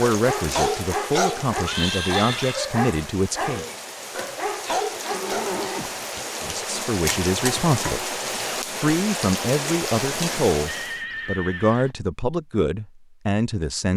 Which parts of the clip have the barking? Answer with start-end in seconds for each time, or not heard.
0.1-5.5.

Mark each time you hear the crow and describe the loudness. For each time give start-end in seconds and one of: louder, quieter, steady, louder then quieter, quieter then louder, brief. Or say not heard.
not heard.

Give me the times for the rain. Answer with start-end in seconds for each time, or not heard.
0.0-11.1.